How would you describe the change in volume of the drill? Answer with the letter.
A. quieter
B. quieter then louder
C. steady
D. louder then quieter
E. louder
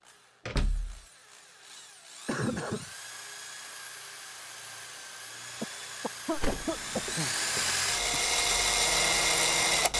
E.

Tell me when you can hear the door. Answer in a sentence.
The door can be heard from 0.5 to 1.0 s and from 6.3 to 6.7 s.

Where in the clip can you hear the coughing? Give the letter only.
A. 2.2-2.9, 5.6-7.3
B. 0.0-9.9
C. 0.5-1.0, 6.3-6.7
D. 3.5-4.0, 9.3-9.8
A.